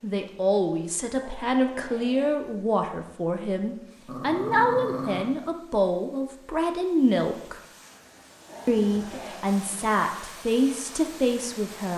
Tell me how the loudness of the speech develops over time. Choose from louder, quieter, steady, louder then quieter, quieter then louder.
steady.